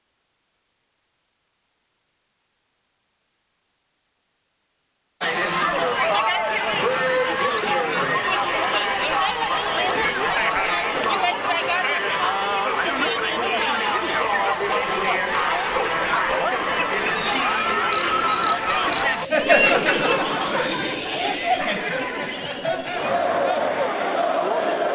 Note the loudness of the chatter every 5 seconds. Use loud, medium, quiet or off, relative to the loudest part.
off, loud, loud, loud, loud.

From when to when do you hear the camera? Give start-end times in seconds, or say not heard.
17.9-19.1.